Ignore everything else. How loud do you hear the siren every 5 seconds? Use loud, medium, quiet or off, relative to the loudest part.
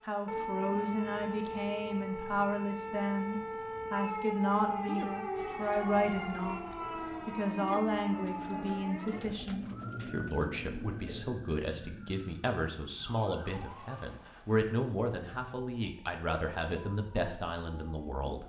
loud, loud, medium, quiet.